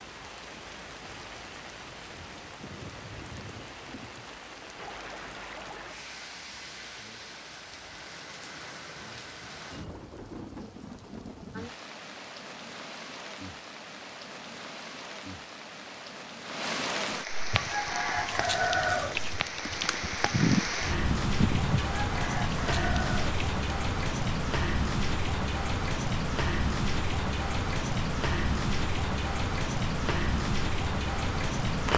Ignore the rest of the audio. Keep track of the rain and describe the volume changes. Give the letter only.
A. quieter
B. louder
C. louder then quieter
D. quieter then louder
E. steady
B.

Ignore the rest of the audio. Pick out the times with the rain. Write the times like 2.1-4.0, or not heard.
0.0-31.9.